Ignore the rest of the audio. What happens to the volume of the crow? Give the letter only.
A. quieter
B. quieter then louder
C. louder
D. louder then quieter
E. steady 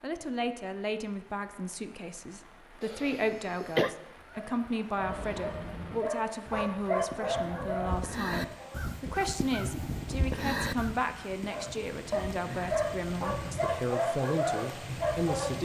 D.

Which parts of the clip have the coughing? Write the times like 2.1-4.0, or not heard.
2.8-3.9.